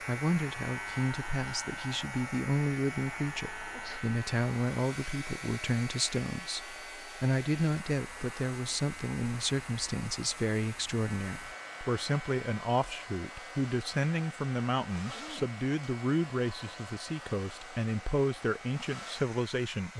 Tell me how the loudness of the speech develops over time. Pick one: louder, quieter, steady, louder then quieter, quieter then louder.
steady.